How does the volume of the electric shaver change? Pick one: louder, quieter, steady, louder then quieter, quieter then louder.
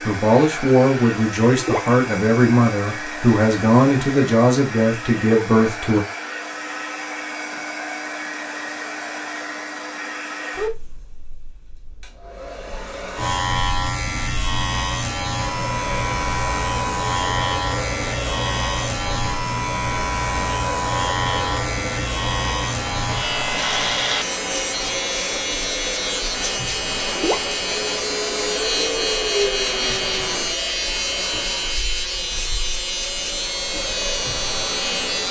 steady.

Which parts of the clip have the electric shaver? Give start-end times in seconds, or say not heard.
13.2-35.2.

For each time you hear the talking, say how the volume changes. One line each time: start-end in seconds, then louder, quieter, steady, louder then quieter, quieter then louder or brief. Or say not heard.
0.1-6.0 steady.